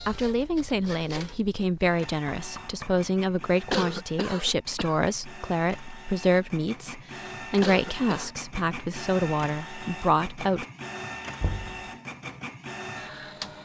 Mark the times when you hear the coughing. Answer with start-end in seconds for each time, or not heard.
3.7-5.1, 7.6-8.3.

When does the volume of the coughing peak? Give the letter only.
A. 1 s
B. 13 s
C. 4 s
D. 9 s
C.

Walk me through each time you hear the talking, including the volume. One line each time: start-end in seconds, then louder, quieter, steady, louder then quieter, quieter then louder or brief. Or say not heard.
0.1-10.7 steady.